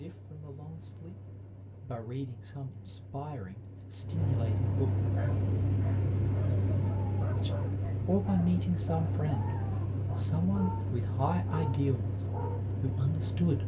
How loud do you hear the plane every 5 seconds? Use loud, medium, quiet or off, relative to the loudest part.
medium, loud, loud.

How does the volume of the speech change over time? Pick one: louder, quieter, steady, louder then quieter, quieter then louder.
louder.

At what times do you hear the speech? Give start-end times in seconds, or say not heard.
0.0-5.0, 7.4-13.6.